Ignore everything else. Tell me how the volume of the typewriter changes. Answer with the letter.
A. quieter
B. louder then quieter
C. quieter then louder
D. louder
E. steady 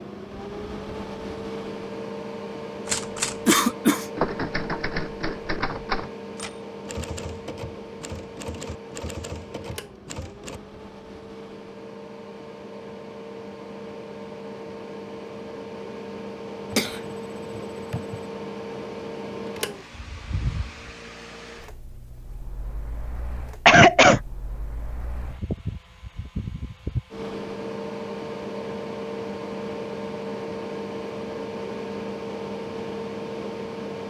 A.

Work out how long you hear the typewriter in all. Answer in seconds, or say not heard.
8 s.